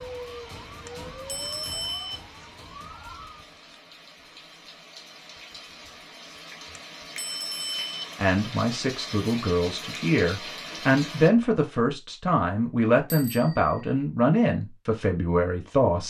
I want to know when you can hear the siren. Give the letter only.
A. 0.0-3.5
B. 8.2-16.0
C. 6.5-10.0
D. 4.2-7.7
A.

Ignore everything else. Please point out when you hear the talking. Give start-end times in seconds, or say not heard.
8.2-16.0.